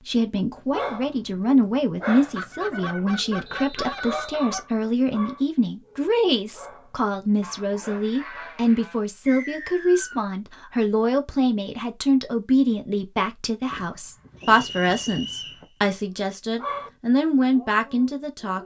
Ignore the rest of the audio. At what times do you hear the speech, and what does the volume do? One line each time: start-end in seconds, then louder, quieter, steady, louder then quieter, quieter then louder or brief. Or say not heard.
0.0-18.6 steady.